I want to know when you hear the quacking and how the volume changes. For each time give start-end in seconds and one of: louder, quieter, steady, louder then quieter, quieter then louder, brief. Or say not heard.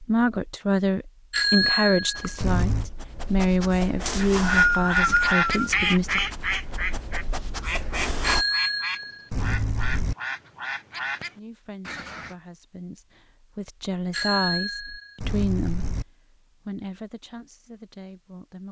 4.2-12.3 quieter.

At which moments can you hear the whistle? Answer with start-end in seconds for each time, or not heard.
4.0-5.7.